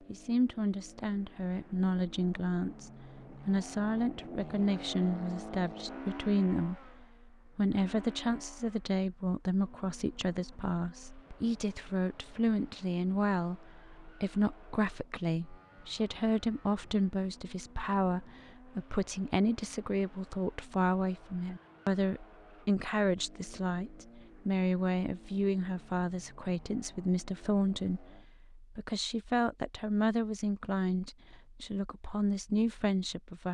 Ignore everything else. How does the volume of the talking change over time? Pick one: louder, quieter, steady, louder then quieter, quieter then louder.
steady.